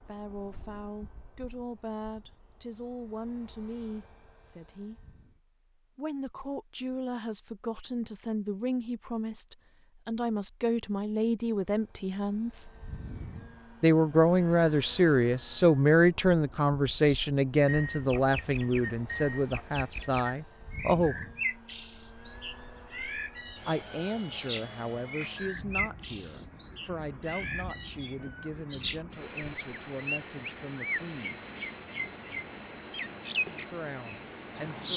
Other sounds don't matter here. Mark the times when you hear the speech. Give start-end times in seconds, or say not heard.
0.0-5.1, 6.0-12.7, 13.8-21.2, 23.6-31.4, 33.5-34.9.